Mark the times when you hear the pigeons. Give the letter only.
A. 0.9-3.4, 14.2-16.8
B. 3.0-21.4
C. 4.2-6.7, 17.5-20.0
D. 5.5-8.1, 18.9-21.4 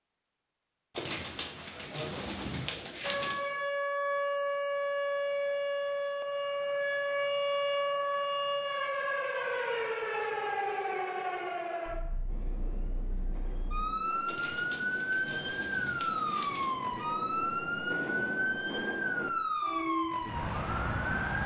A.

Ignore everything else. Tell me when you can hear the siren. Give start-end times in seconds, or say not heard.
3.0-21.4.